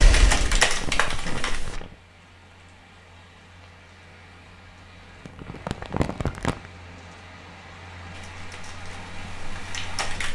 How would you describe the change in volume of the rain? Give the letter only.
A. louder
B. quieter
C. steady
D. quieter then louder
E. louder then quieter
A.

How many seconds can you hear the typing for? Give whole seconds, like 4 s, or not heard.
4 s.